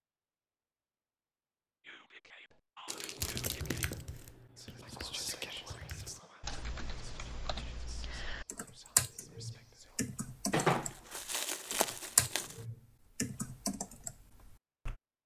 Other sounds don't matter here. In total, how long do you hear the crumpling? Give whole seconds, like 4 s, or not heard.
3 s.